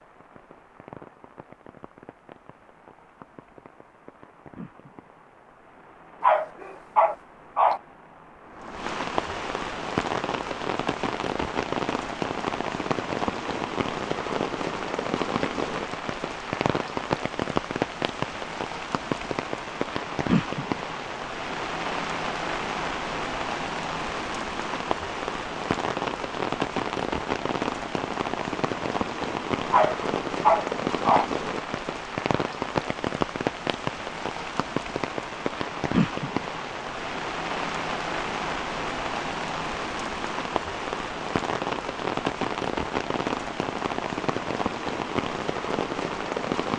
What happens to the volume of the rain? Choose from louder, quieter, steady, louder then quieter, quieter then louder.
louder.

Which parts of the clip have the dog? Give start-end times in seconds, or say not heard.
6.2-7.8, 29.7-31.3.